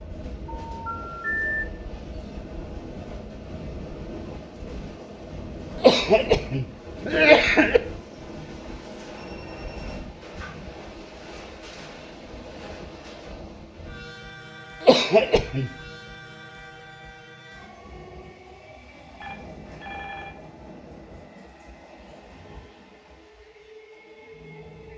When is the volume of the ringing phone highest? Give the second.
1 s.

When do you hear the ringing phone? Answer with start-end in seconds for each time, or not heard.
0.7-1.6, 9.1-10.7, 19.2-20.4.